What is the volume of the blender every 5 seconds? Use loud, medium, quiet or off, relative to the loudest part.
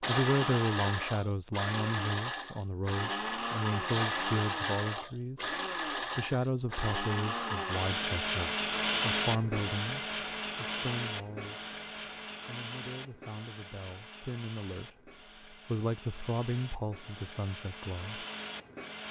loud, loud, medium, quiet.